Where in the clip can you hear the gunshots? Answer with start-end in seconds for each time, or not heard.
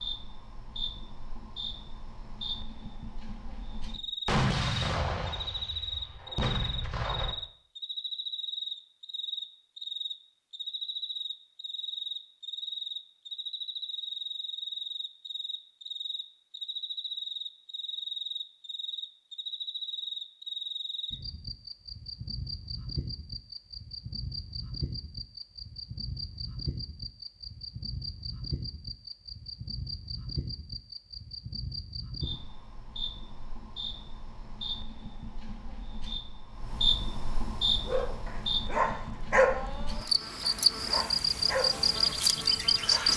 4.2-7.3.